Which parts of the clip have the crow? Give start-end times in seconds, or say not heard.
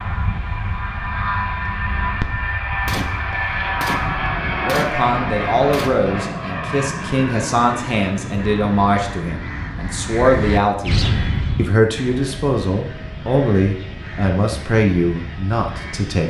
8.4-16.2.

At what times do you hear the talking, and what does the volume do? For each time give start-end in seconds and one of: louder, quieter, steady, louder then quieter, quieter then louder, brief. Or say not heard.
4.6-16.2 steady.